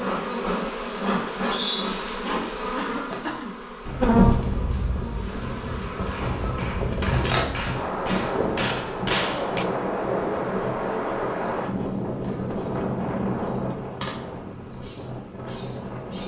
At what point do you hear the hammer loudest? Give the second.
9 s.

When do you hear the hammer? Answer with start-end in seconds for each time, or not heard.
6.0-9.7.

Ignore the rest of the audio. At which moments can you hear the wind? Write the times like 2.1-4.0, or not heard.
3.9-16.2.